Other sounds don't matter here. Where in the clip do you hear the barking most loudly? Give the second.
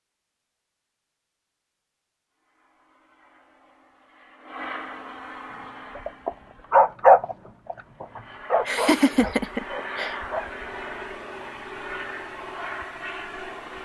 7 s.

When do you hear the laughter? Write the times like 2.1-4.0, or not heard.
8.7-10.2.